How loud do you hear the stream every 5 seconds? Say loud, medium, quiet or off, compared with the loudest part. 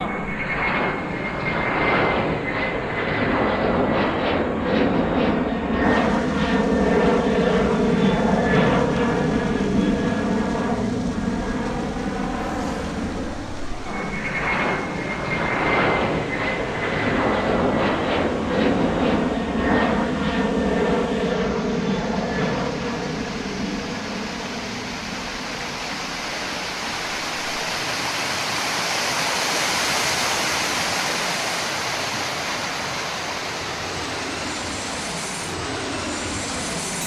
quiet, quiet, quiet, quiet, medium, loud, loud, medium.